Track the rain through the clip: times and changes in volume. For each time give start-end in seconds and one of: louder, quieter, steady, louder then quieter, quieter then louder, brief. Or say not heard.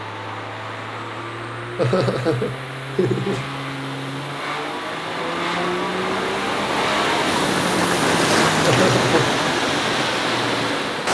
0.0-11.0 louder.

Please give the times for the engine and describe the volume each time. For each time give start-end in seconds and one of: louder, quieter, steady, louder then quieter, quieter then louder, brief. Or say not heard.
0.0-11.0 louder.